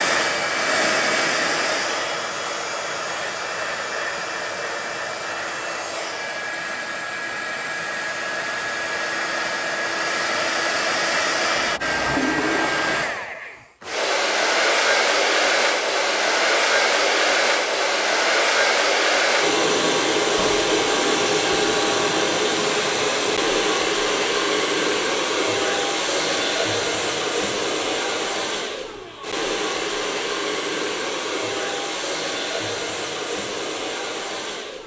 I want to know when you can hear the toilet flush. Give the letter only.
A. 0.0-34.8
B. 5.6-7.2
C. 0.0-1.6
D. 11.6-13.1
D.